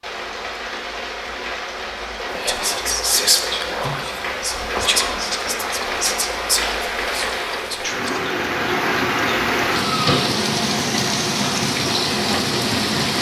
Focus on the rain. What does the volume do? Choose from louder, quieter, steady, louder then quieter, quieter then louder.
louder.